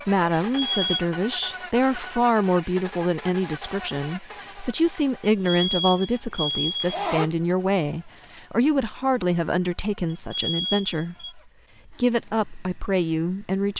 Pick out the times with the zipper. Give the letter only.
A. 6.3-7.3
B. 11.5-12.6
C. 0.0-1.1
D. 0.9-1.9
A.